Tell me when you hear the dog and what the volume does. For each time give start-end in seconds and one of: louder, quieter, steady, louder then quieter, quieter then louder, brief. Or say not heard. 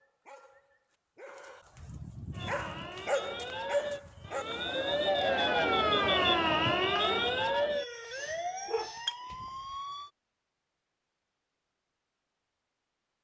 0.0-5.1 louder then quieter
8.2-9.5 brief.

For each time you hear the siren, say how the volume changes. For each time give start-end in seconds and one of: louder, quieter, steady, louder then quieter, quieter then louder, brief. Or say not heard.
2.3-10.1 louder then quieter.